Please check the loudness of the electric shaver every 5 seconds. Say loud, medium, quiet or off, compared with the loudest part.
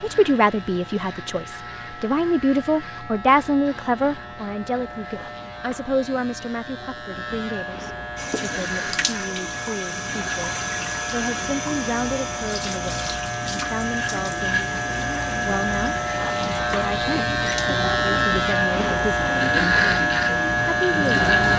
quiet, quiet, medium, loud, loud.